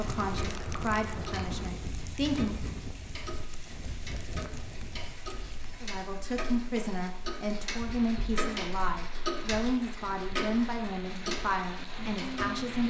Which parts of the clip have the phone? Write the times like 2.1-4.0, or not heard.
not heard.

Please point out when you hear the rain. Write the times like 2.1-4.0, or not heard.
0.0-12.8.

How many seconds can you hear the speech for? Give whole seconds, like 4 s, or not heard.
10 s.